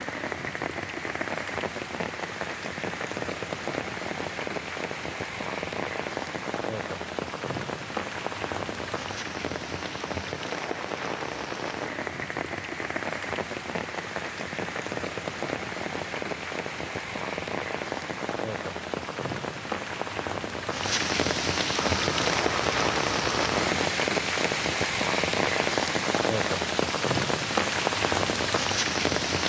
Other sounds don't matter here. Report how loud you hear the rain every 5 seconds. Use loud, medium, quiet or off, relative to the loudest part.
medium, medium, medium, medium, loud, loud.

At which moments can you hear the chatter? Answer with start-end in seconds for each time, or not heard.
not heard.